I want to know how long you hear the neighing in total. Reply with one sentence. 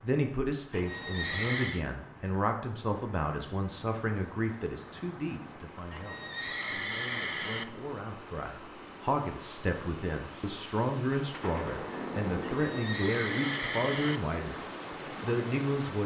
You can hear the neighing for 5 seconds altogether.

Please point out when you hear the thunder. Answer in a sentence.
The thunder can be heard from 11.2 to 12.8 s.